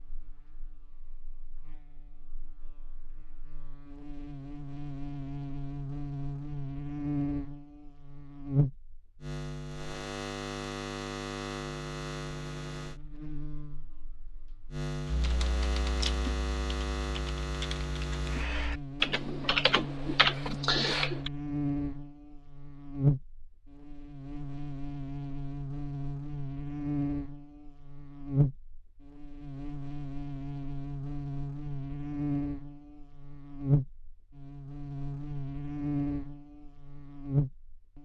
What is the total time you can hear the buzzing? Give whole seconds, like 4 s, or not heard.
38 s.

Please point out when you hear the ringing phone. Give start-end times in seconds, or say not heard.
not heard.